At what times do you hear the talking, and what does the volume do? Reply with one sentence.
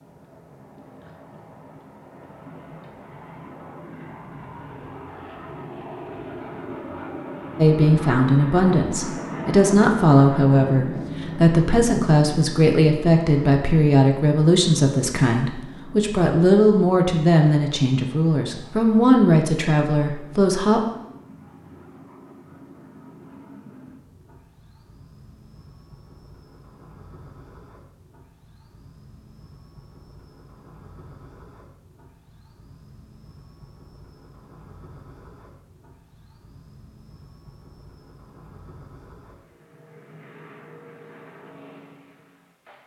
The talking can be heard from 7.5 to 20.8 s, at a steady volume.